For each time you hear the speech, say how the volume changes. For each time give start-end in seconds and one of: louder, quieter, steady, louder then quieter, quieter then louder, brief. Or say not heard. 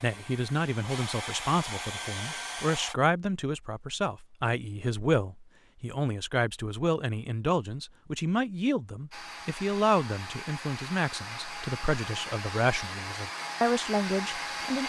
0.0-14.8 steady.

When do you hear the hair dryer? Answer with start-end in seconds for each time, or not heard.
0.0-3.0, 9.1-14.8.